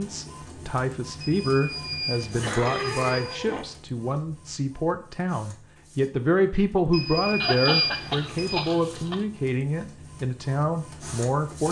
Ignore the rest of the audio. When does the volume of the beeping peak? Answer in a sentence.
The volume of the beeping peaks at 8 seconds.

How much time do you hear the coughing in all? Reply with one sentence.
You can hear the coughing for 3 seconds altogether.